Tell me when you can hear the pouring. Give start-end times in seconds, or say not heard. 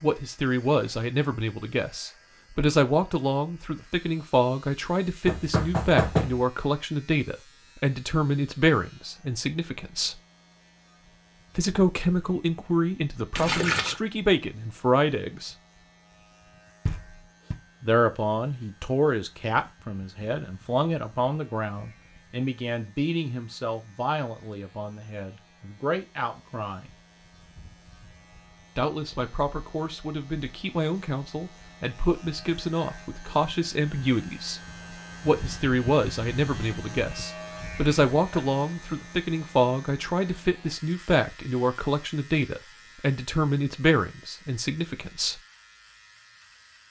13.3-14.0.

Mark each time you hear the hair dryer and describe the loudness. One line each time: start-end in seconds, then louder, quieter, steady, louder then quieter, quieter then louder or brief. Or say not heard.
not heard.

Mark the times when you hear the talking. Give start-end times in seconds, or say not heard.
0.0-10.2, 11.6-15.6, 17.8-26.9, 28.8-34.6, 35.2-45.4.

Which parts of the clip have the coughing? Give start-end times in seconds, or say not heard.
not heard.